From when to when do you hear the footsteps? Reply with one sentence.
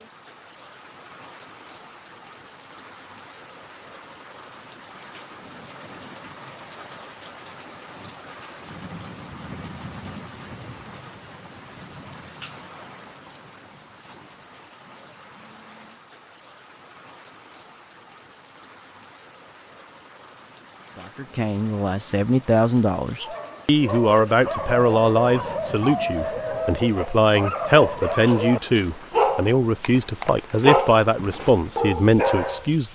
The footsteps can't be heard in this clip.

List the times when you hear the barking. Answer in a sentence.
You can hear the barking from 23.2 to 32.6 s.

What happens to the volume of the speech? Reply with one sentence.
The volume of the speech stays about the same.